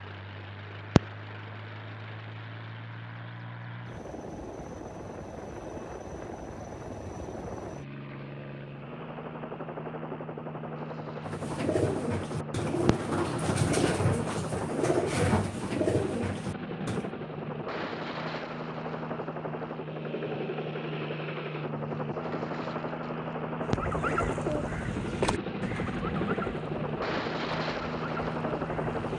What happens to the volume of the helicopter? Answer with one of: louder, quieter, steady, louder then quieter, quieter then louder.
louder.